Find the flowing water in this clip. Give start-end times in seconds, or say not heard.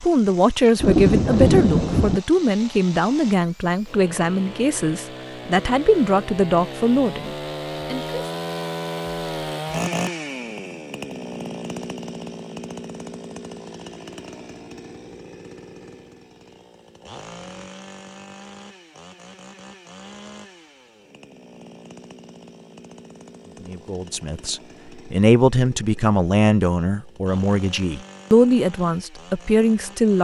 not heard.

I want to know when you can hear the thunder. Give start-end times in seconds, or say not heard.
0.8-2.2.